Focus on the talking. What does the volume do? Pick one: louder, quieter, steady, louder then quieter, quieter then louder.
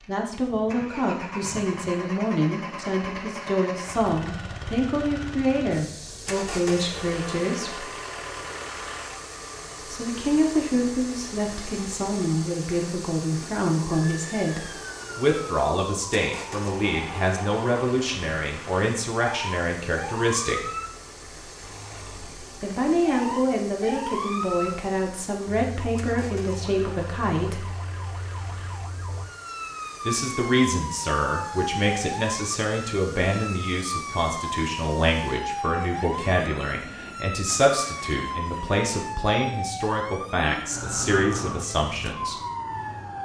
steady.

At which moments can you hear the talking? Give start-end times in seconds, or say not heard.
0.1-7.8, 9.8-20.6, 22.6-27.8, 30.1-42.4.